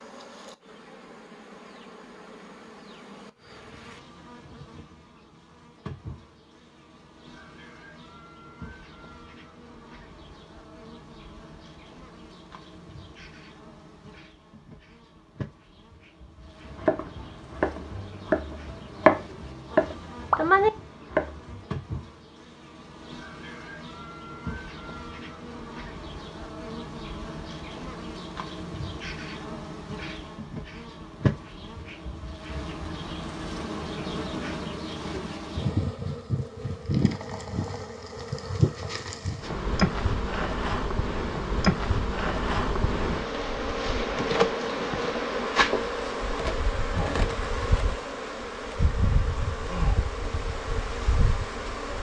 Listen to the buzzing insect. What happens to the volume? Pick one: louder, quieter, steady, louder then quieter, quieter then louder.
louder.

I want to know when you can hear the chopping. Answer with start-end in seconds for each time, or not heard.
16.8-21.6.